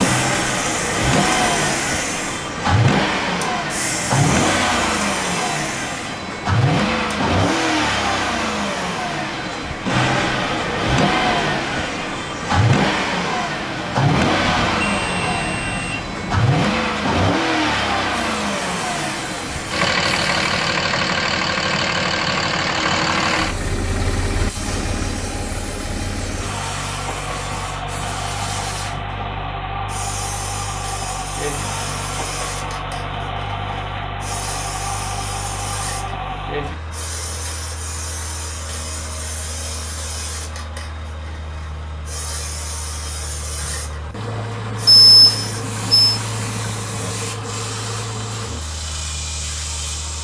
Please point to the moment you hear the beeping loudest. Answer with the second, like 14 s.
45 s.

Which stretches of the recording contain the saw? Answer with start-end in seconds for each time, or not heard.
not heard.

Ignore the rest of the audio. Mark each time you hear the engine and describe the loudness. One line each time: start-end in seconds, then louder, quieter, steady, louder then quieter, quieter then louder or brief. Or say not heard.
0.0-50.2 quieter.